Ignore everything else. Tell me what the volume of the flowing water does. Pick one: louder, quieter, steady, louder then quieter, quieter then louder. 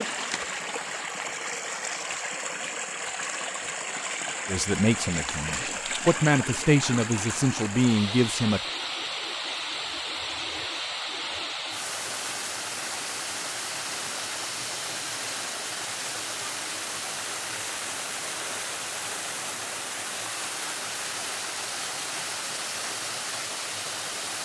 steady.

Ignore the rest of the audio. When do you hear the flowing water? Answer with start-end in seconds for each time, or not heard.
0.0-24.4.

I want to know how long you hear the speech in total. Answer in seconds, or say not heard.
4 s.